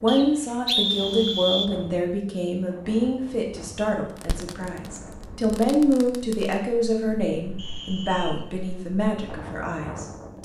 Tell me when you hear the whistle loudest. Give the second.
1 s.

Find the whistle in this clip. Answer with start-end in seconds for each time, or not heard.
0.1-1.7, 7.5-8.4.